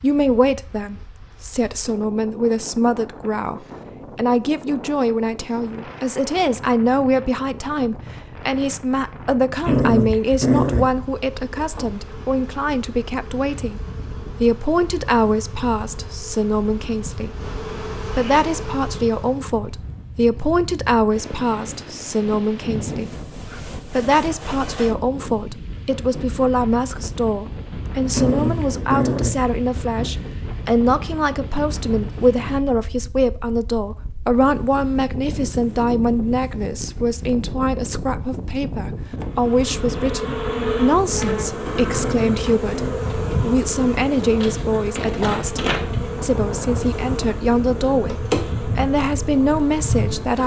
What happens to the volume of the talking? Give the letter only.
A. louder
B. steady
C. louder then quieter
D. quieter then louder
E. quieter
B.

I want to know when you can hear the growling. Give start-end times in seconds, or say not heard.
9.6-10.9, 28.1-30.1, 41.9-43.0.